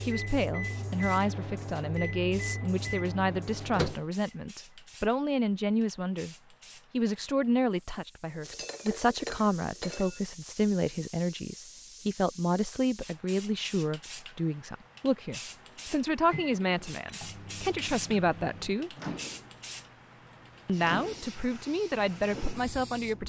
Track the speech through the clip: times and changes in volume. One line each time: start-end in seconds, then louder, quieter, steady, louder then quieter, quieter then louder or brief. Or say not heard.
0.0-18.9 steady
20.6-23.2 brief.